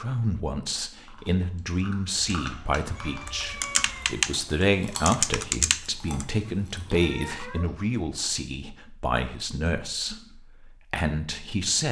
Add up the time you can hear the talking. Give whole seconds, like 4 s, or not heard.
12 s.